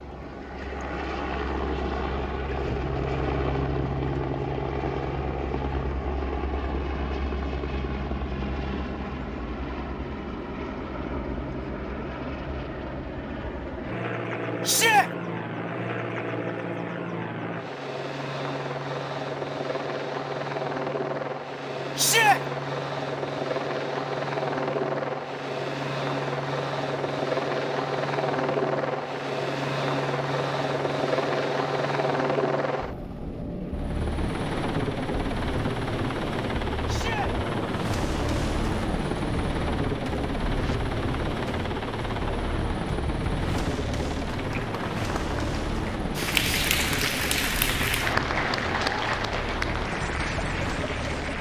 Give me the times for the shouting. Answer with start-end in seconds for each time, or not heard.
14.7-15.1, 21.9-22.4, 36.9-37.3.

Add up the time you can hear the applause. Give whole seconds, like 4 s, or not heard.
7 s.